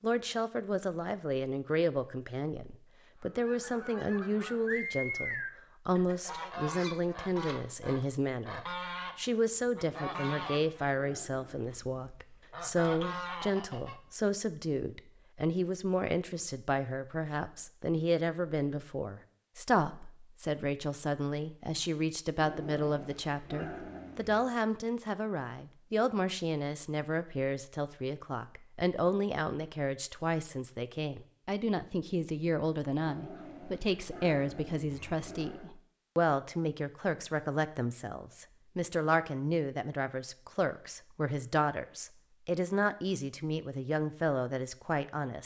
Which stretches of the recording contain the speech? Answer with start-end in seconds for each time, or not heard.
0.0-45.4.